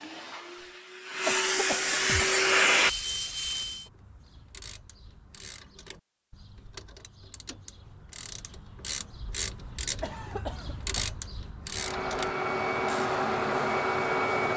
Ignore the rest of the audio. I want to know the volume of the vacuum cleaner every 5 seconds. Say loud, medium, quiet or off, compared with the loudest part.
loud, off, loud.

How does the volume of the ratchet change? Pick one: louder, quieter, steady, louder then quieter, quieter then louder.
louder.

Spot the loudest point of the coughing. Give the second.
1 s.